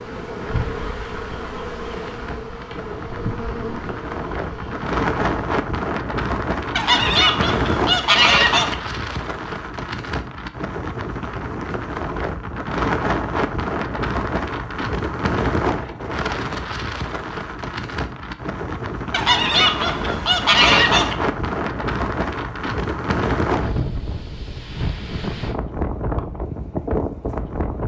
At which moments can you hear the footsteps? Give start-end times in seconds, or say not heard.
not heard.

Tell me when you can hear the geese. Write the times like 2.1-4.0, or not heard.
6.8-8.8, 19.1-21.1.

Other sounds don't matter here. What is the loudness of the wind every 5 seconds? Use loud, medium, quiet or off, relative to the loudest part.
medium, loud, loud, loud, loud, loud.